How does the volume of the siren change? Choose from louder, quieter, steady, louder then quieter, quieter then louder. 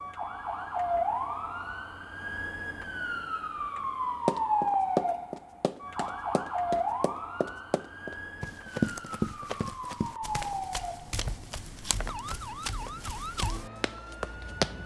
quieter.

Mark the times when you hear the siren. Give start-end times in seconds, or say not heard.
0.0-14.8.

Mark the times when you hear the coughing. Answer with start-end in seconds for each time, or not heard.
not heard.